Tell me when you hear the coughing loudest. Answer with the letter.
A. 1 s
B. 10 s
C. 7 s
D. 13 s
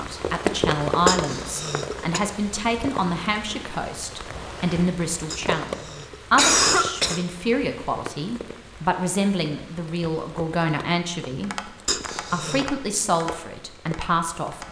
C.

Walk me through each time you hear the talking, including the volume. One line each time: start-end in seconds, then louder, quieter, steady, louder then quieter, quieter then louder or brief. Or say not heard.
0.0-14.6 steady.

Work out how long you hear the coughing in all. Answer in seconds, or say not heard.
4 s.